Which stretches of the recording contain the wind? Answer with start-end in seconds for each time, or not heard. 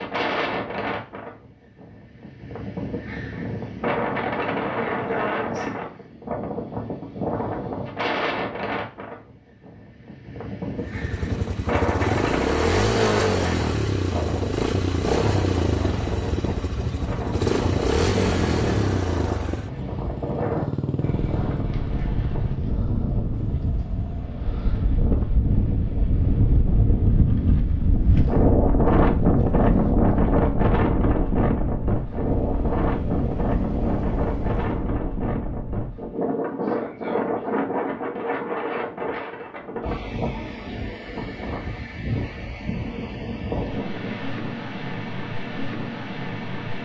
0.0-46.7.